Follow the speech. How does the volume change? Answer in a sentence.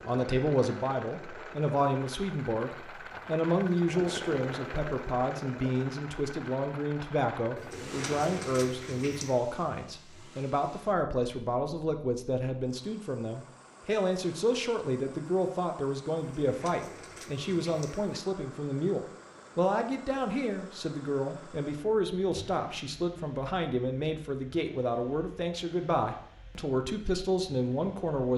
The loudness of the speech stays about the same.